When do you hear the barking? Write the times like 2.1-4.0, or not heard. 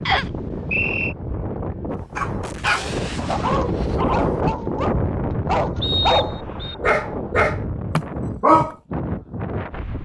2.1-8.8.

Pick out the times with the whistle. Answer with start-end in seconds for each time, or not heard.
0.1-1.1, 5.8-6.8.